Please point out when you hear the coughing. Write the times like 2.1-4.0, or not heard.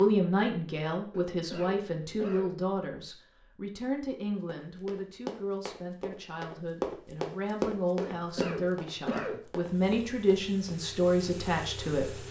1.1-2.5, 8.0-9.4.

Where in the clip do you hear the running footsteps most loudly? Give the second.
8 s.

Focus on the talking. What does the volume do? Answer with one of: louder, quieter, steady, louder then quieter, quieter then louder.
quieter then louder.